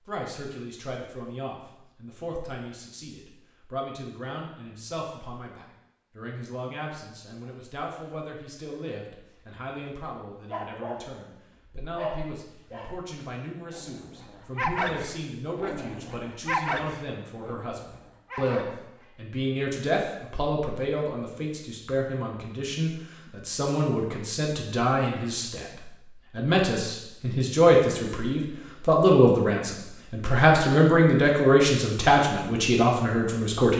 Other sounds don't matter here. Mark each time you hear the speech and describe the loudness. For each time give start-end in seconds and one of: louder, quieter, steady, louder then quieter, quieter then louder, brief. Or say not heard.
0.0-33.7 louder.